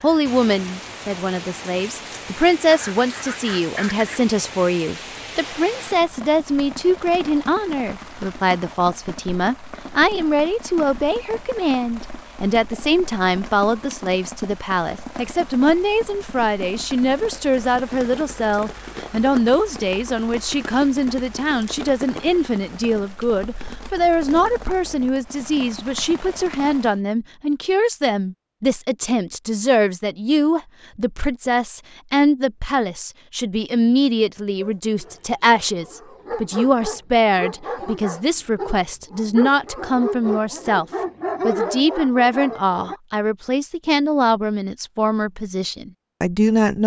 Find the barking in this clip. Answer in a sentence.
The barking can be heard from 34.6 to 43.0 s.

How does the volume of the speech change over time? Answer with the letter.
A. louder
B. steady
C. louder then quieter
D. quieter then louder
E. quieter
B.